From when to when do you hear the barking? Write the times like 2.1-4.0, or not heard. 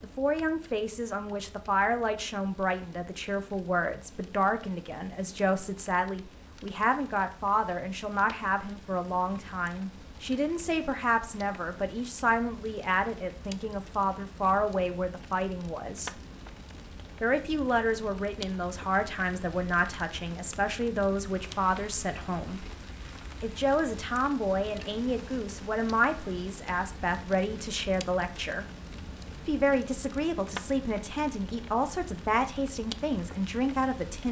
not heard.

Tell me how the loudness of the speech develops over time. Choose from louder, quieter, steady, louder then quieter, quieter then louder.
steady.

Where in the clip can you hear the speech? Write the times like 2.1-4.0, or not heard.
0.0-16.1, 17.2-22.6, 23.4-28.6, 29.4-34.2.